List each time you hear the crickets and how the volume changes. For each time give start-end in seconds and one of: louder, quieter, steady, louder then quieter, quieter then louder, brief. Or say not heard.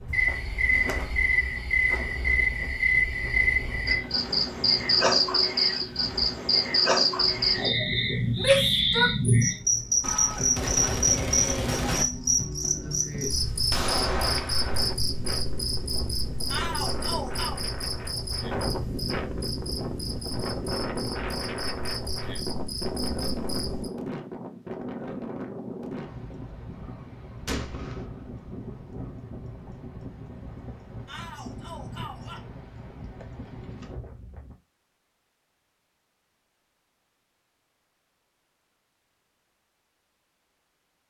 0.0-23.9 quieter.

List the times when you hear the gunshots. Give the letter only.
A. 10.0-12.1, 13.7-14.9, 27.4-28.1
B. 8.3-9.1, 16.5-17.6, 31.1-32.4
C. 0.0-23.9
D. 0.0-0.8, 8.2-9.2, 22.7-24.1
A.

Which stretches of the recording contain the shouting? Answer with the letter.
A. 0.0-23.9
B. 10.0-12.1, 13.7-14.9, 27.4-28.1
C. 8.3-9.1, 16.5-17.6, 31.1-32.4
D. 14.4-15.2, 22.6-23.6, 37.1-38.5
C.